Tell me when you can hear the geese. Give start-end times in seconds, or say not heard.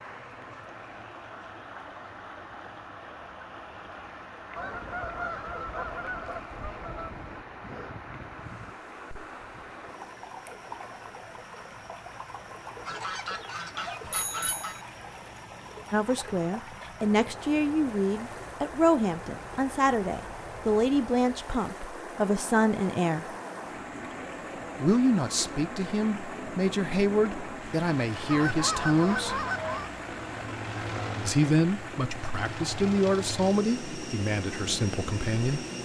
4.5-7.5, 12.8-14.8, 28.3-29.9.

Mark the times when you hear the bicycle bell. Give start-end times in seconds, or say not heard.
14.0-14.8.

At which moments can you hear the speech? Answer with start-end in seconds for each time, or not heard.
15.9-23.2, 24.8-29.4, 31.2-35.6.